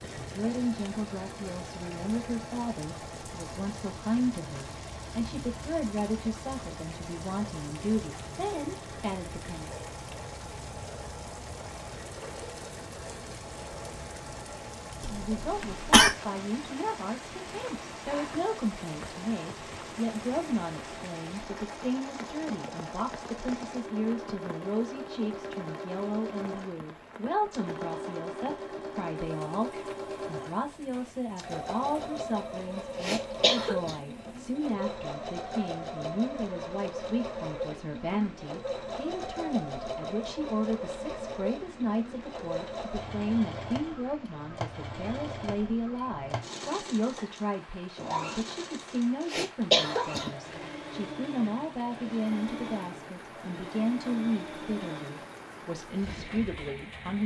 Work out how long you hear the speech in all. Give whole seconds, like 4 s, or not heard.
52 s.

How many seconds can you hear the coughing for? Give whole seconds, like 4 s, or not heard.
3 s.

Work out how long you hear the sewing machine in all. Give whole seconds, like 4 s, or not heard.
57 s.